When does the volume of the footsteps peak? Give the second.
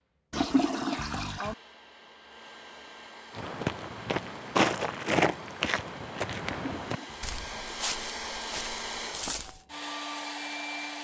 5 s.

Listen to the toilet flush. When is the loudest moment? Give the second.
1 s.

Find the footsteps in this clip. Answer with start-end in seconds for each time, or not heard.
3.4-9.7.